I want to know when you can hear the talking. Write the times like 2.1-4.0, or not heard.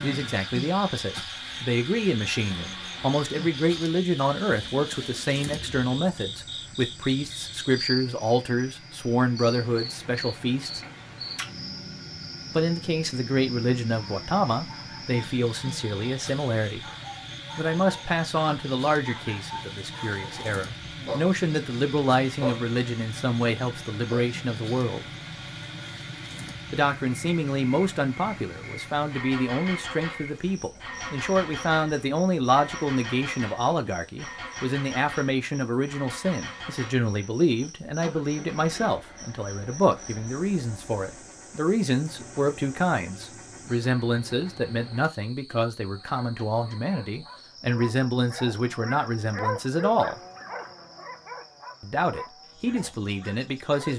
0.0-10.8, 12.5-16.9, 17.6-25.1, 26.7-50.2, 51.8-53.9.